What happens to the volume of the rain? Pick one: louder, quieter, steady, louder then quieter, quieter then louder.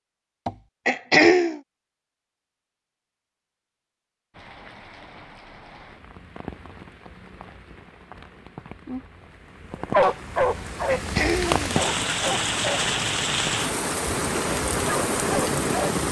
louder.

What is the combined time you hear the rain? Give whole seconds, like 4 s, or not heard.
12 s.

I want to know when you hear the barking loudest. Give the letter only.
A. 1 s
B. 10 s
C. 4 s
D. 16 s
B.